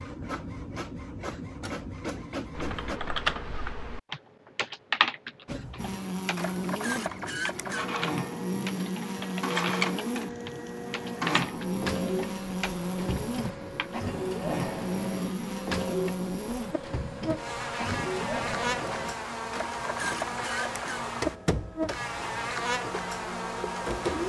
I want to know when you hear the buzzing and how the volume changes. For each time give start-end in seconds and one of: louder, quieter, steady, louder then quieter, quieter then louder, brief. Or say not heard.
5.8-24.2 steady.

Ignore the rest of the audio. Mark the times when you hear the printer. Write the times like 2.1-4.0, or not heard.
0.0-3.0, 5.5-24.2.